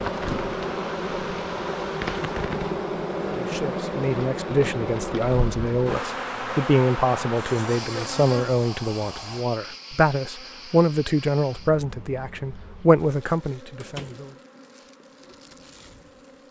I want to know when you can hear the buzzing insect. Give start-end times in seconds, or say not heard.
0.0-16.4.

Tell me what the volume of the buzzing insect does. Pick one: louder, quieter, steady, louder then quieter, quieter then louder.
quieter.